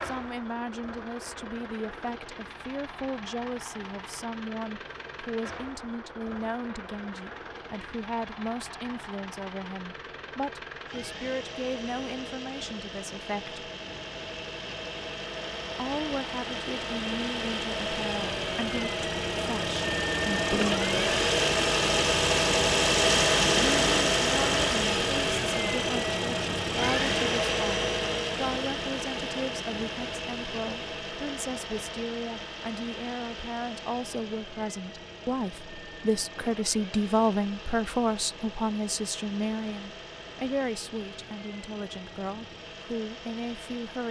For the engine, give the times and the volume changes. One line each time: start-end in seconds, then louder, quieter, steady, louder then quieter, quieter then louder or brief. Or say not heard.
0.0-44.0 louder then quieter.